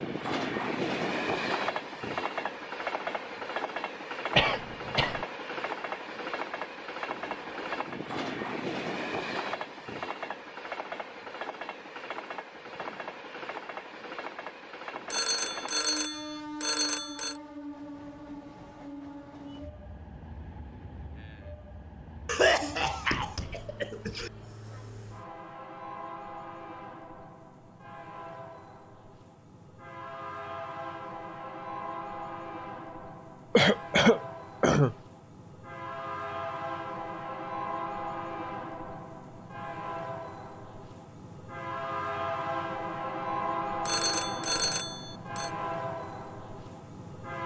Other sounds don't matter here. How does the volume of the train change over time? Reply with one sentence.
The loudness of the train goes down, then up.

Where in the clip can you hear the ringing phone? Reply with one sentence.
The ringing phone can be heard from 15.1 to 17.4 s and from 43.9 to 45.5 s.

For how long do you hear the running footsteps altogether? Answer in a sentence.
You can't hear the running footsteps here.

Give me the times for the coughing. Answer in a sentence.
The coughing can be heard from 4.3 to 5.2 s, from 22.2 to 24.3 s and from 33.5 to 35.0 s.